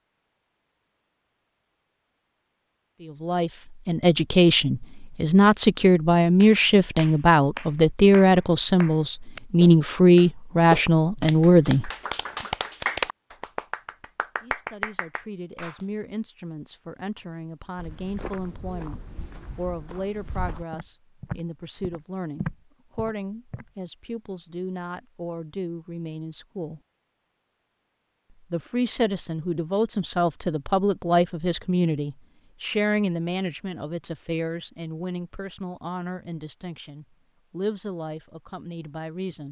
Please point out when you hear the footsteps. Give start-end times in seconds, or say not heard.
17.8-23.7.